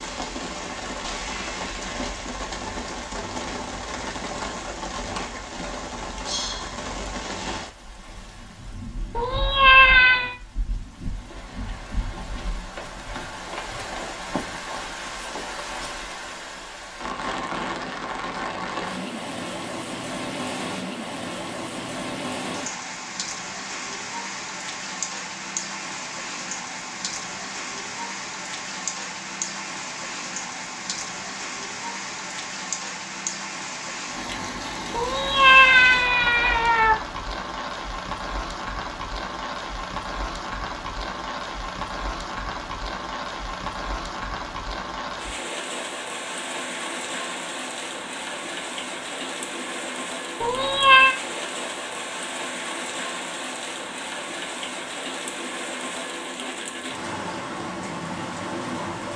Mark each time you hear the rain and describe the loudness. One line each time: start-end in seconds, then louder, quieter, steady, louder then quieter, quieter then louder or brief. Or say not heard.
0.0-59.1 steady.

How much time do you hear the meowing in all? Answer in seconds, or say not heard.
4 s.